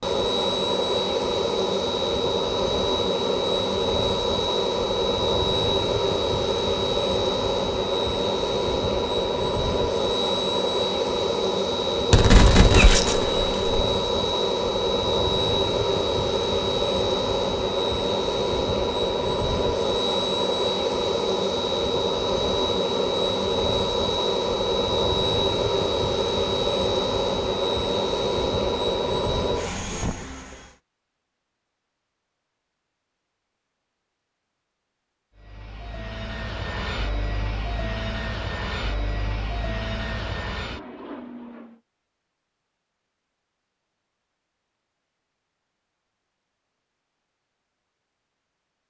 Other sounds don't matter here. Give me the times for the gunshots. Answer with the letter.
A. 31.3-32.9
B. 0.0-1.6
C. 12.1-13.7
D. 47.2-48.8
C.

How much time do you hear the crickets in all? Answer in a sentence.
You can't hear the crickets here.